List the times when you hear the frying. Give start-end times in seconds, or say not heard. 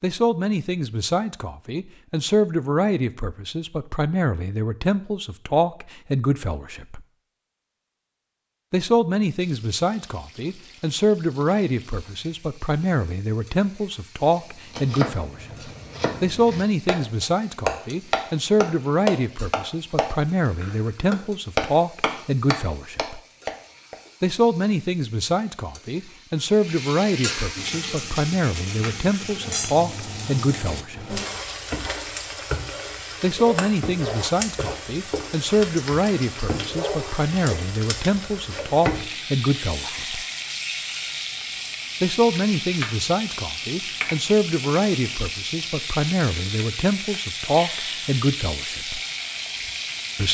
9.3-50.3.